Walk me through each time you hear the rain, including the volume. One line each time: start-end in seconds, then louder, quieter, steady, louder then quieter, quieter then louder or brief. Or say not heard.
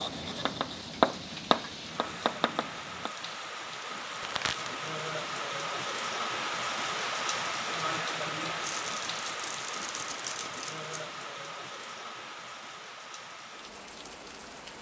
0.0-14.7 louder then quieter.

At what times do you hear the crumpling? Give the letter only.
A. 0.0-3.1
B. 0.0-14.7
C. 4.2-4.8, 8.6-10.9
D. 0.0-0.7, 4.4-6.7
C.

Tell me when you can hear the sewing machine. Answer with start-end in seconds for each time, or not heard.
not heard.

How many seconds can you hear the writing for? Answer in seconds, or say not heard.
3 s.